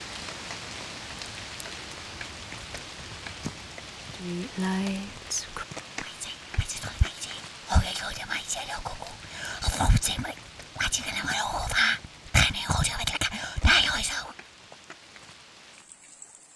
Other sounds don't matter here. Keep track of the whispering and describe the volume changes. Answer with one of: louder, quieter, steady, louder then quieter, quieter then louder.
louder.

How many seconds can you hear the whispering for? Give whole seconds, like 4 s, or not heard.
10 s.